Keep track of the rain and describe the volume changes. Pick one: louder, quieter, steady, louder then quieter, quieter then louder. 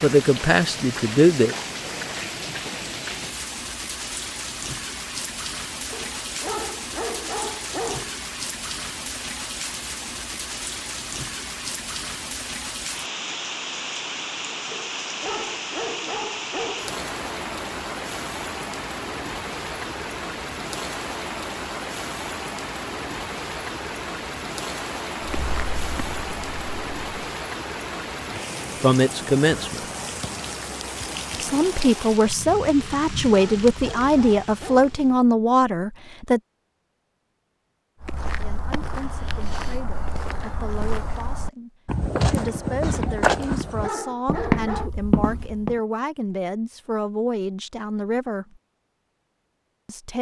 steady.